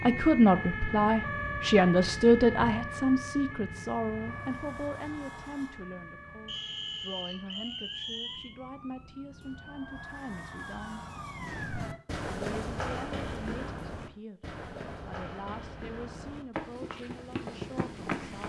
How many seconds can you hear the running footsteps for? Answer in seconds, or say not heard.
7 s.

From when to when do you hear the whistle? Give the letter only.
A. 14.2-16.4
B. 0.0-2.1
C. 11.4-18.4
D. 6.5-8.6
D.